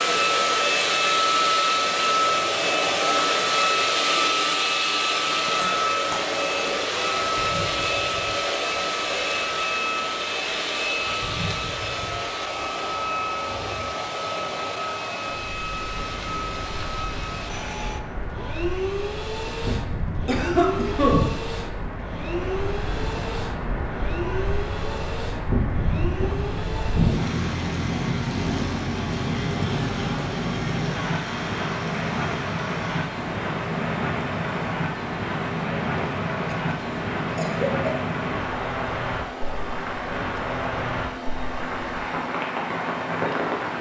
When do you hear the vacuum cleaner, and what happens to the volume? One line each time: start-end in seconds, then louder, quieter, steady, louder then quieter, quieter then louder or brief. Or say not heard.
0.0-43.7 quieter.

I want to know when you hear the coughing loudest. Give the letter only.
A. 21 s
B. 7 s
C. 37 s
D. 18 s
A.